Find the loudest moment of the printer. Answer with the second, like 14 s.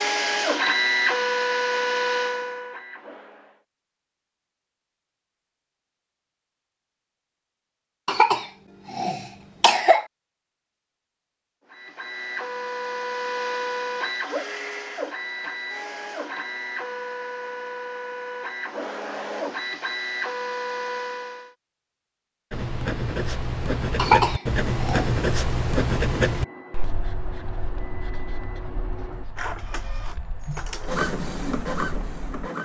1 s.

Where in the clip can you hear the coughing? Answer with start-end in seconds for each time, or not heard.
8.1-10.1, 23.9-25.1.